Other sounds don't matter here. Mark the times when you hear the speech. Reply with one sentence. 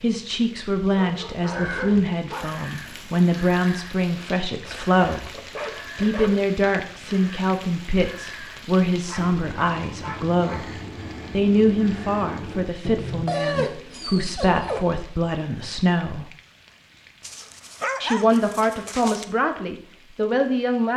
You can hear the speech from 0.0 to 5.3 s, from 6.0 to 10.7 s, from 11.3 to 16.2 s and from 18.0 to 20.9 s.